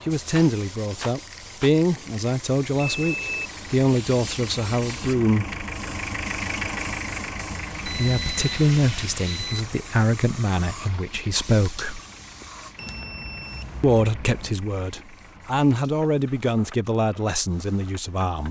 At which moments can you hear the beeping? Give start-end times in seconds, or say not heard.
2.8-3.5, 7.8-9.7, 12.8-14.6.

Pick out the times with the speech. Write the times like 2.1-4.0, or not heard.
0.1-5.7, 7.8-12.0, 13.8-18.4.